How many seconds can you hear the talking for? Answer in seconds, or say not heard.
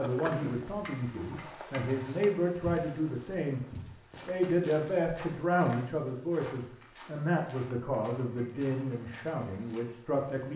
10 s.